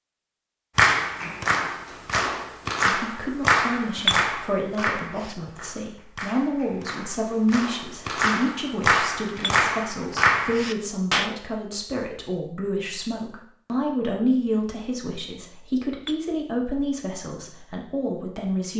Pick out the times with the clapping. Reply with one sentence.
The clapping can be heard from 0.8 to 11.3 s.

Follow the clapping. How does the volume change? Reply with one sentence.
The loudness of the clapping goes down, then up.